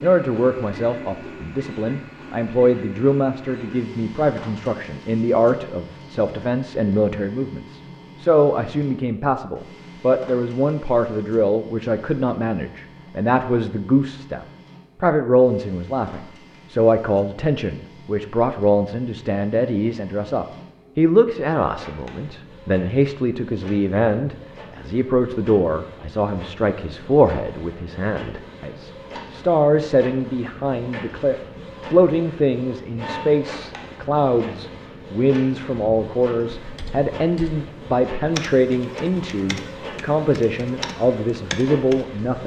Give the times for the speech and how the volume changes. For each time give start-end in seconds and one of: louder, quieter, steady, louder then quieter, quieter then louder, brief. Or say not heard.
0.0-42.4 steady.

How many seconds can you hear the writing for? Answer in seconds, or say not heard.
not heard.